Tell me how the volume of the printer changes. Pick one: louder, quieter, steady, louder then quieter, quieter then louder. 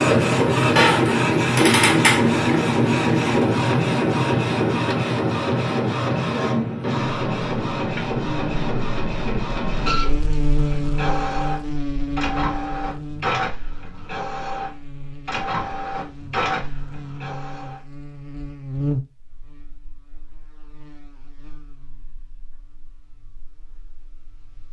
quieter.